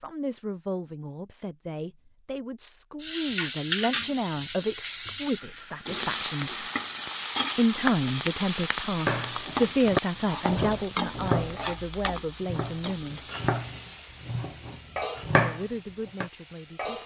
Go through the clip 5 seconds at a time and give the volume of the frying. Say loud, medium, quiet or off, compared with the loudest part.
loud, loud, medium, medium.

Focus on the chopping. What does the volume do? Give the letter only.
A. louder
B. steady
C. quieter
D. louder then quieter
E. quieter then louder
E.